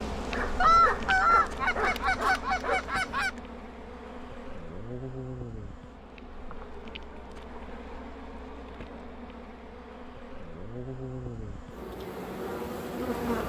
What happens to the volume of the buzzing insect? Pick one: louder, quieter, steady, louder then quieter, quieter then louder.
quieter then louder.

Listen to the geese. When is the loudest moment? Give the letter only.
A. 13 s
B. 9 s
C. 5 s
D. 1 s
D.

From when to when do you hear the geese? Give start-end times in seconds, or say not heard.
0.6-3.3.